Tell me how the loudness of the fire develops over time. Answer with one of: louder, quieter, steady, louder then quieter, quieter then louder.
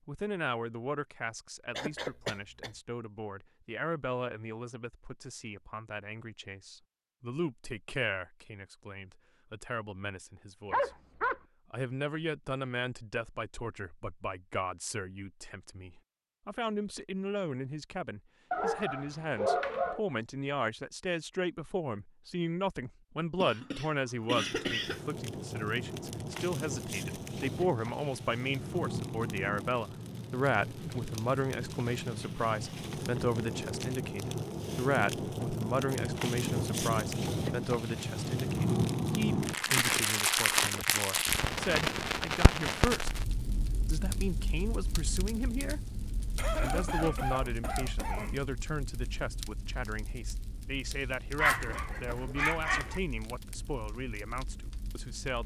louder then quieter.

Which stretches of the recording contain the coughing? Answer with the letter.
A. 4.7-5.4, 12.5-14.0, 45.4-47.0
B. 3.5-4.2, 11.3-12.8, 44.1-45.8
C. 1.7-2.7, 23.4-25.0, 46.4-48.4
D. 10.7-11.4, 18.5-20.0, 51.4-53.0
C.